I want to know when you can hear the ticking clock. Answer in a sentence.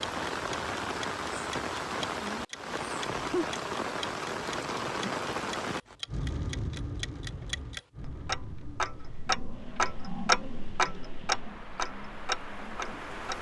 The ticking clock can be heard from 0.0 to 13.3 s.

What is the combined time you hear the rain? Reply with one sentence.
You can hear the rain for 13 seconds altogether.